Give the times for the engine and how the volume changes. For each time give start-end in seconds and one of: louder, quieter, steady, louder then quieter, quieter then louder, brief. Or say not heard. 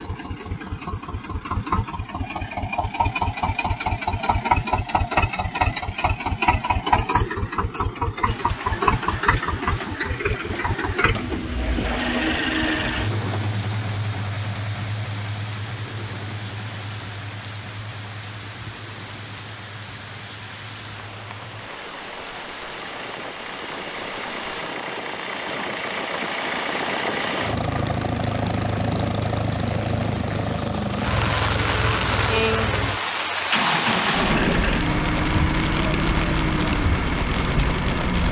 0.0-38.2 quieter then louder.